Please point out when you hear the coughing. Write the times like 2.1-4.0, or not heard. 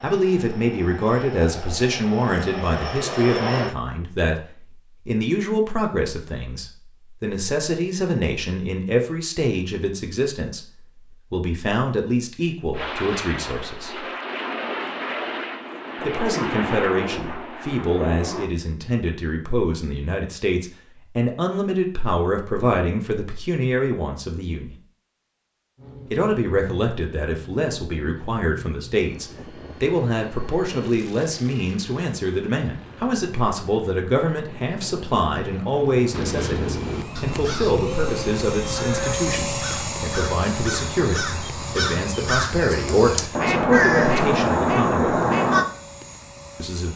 not heard.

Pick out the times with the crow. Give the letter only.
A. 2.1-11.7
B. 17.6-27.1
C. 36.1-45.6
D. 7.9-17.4
C.